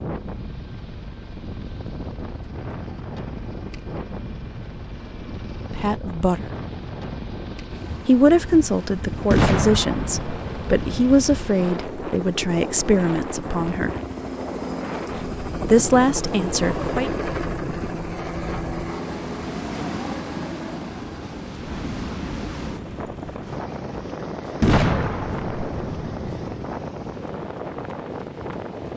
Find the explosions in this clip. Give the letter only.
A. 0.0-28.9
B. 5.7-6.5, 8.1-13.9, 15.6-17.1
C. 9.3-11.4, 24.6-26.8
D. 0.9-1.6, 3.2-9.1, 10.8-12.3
C.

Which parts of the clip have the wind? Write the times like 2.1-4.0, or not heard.
0.0-28.9.